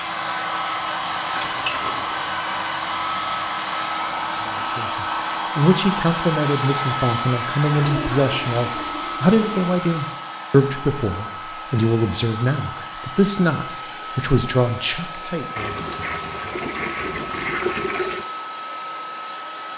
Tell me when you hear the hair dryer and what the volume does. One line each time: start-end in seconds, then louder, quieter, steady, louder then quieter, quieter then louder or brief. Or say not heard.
0.0-19.7 quieter.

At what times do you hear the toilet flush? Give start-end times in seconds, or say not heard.
1.4-2.1, 7.7-10.2, 15.6-18.2.